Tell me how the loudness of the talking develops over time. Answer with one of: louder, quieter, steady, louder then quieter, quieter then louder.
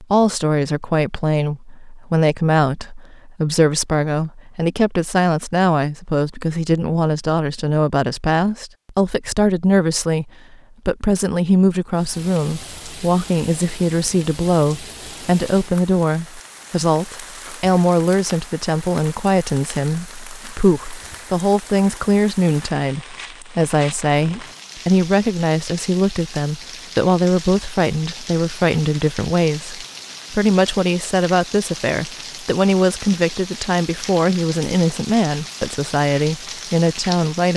steady.